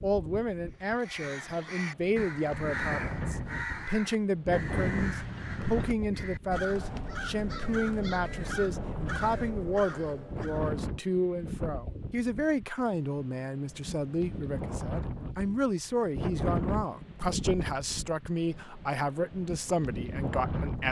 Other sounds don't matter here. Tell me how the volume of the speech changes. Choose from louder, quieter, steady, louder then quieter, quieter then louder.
steady.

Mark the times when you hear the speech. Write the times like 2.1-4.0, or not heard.
0.0-20.8.